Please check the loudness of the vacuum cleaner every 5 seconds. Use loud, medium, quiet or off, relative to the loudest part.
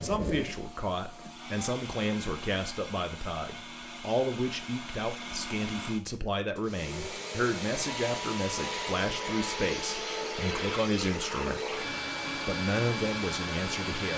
medium, loud, loud.